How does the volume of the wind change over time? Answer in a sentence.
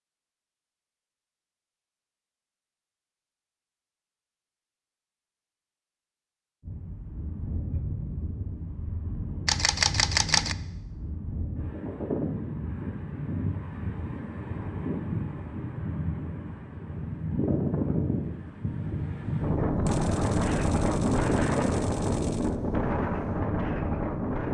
The volume of the wind goes up.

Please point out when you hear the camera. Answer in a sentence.
The camera can be heard from 9.4 to 10.6 s and from 19.9 to 22.6 s.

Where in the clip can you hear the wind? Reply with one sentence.
The wind can be heard from 6.6 to 24.5 s.